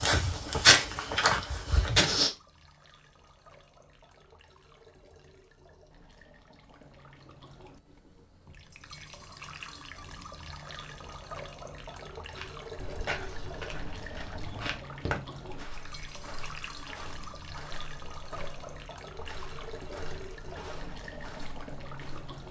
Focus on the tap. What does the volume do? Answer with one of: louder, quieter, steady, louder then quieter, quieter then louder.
louder.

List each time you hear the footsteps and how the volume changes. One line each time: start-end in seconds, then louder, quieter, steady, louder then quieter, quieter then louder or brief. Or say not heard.
0.0-2.3 brief
12.3-22.4 quieter.